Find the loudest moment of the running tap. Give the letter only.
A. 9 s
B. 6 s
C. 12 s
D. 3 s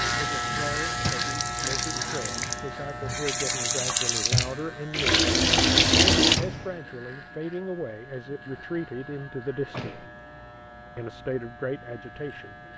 B.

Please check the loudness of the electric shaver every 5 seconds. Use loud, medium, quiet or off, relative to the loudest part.
loud, quiet, quiet.